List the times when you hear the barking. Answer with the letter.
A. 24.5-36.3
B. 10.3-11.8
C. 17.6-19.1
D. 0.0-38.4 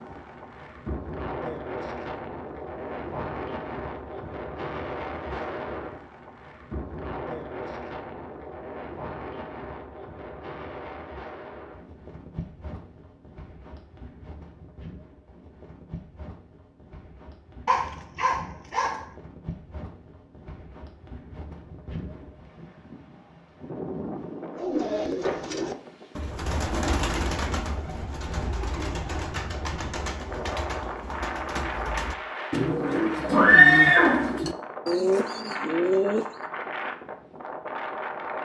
C.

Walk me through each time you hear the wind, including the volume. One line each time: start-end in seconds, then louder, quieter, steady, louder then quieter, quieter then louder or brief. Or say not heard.
0.0-38.4 quieter then louder.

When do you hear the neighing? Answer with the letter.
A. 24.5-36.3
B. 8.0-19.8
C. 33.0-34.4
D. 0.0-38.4
C.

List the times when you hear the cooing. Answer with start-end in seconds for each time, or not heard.
24.5-36.3.